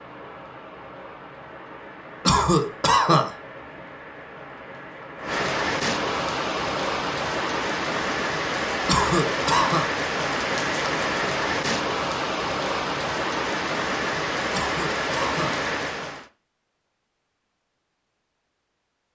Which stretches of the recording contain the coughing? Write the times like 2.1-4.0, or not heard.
2.2-3.3, 8.8-9.9, 14.5-15.6.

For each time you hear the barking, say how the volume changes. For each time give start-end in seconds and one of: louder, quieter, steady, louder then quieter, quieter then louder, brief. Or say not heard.
not heard.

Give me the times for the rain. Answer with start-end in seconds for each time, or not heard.
0.0-16.2.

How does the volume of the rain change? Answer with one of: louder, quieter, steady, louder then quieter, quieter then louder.
louder.